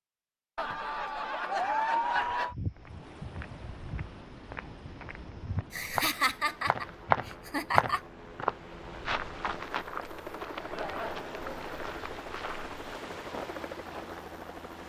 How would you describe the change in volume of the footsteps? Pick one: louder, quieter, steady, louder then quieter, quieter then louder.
louder then quieter.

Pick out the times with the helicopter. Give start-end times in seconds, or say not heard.
2.8-14.8.